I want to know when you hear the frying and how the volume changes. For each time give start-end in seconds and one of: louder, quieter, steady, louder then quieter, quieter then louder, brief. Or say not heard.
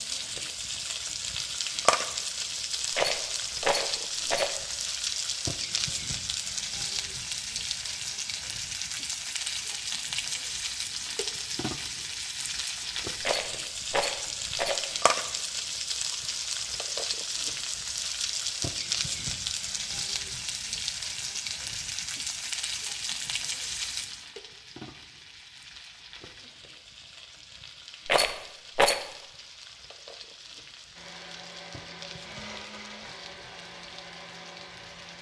0.0-35.1 quieter.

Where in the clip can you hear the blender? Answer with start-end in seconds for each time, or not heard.
30.9-35.1.